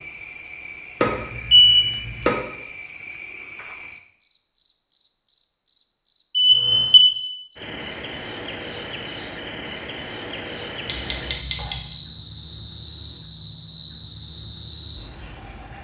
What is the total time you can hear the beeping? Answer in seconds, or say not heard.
3 s.